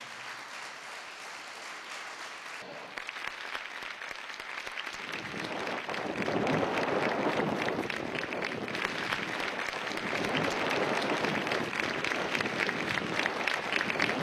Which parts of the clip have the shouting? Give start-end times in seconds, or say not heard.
not heard.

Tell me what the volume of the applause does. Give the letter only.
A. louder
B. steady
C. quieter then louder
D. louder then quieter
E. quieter
A.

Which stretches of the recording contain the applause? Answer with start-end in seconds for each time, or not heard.
0.0-14.1.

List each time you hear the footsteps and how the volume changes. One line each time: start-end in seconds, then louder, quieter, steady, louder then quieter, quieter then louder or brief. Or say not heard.
not heard.